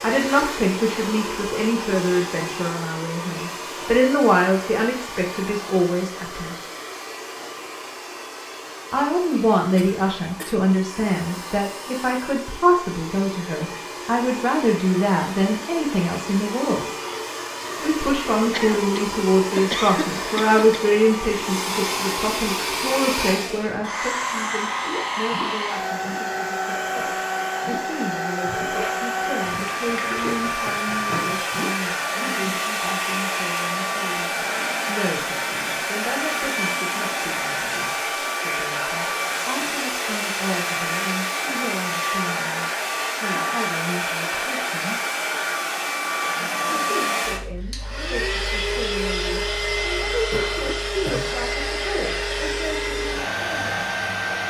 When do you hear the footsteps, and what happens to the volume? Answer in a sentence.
You can't hear the footsteps here.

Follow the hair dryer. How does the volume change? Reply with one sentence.
The volume of the hair dryer goes up.